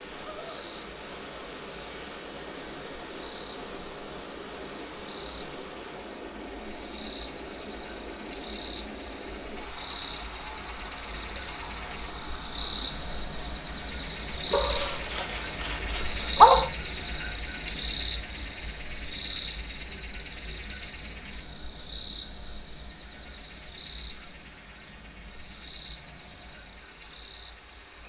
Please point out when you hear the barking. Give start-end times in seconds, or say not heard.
14.5-16.7.